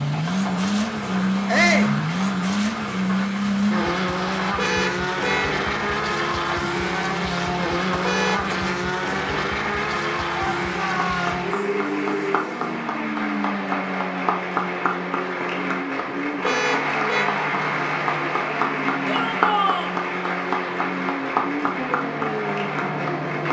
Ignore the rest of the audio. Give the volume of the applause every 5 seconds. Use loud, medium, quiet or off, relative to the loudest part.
medium, medium, loud, loud, loud.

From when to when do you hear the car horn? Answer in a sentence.
The car horn can be heard from 4.5 to 5.6 s, from 8.0 to 8.4 s and from 16.4 to 17.2 s.